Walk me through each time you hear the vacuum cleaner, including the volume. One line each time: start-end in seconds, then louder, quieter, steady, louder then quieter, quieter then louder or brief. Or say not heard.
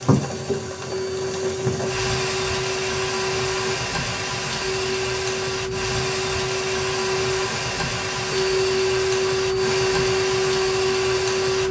0.1-11.6 louder.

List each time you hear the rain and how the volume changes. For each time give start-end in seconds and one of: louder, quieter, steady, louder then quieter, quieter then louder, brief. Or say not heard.
0.0-11.6 steady.